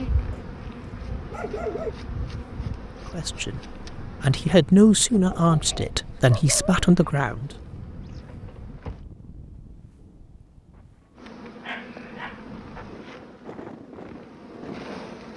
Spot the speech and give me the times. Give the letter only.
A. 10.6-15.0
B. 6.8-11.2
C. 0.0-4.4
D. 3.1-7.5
D.